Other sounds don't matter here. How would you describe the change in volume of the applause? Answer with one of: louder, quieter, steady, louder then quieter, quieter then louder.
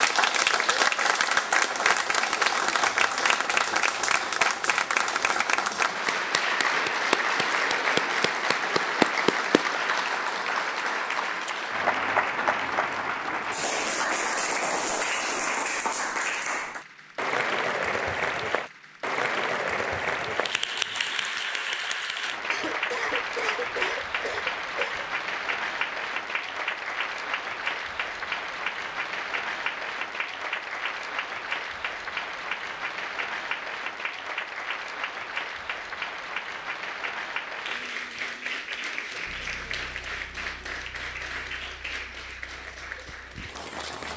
quieter.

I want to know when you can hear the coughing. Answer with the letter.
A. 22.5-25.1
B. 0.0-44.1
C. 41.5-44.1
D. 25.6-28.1
A.